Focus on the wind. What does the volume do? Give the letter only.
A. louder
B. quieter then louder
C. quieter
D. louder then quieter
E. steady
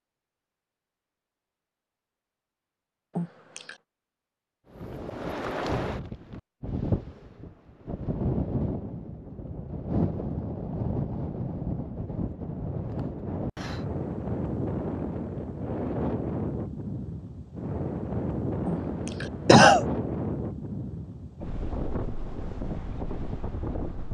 E.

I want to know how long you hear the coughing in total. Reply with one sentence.
You can hear the coughing for 2 seconds altogether.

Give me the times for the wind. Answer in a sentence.
You can hear the wind from 4.7 to 24.0 s.